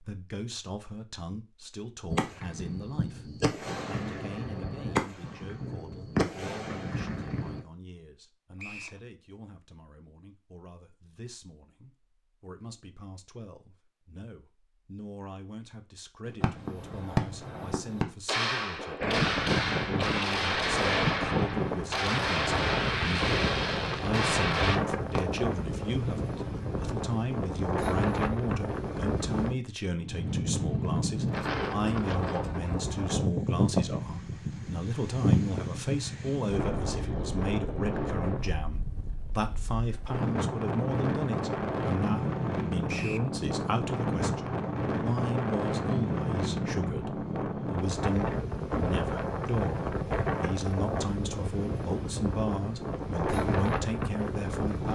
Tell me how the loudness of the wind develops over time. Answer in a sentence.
The volume of the wind stays about the same.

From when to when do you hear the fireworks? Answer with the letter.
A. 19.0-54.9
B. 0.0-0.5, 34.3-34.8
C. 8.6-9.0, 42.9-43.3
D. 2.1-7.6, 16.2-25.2
D.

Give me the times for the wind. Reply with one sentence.
The wind can be heard from 19.0 to 54.9 s.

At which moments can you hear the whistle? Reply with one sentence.
You can hear the whistle from 8.6 to 9.0 s and from 42.9 to 43.3 s.